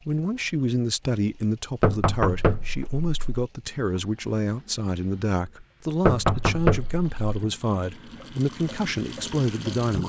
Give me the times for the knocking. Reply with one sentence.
The knocking can be heard from 1.8 to 3.4 s and from 6.0 to 7.3 s.